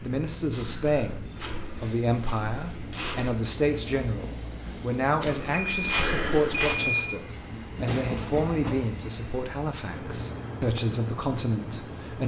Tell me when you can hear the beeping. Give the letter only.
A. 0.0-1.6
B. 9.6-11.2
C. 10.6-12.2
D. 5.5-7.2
D.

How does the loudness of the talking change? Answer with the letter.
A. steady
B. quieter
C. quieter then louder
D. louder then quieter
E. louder
A.